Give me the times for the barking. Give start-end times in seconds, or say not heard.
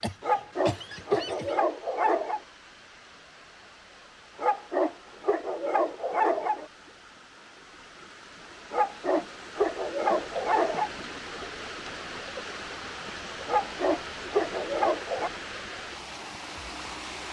0.2-2.4, 4.3-6.7, 8.7-10.9, 13.4-15.3.